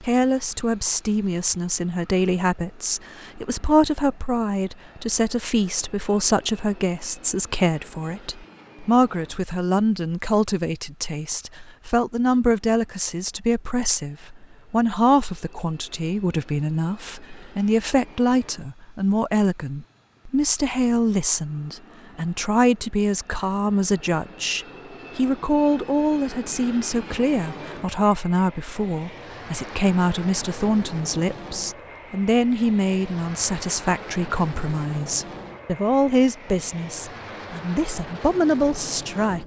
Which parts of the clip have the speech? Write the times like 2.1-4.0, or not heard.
0.0-39.4.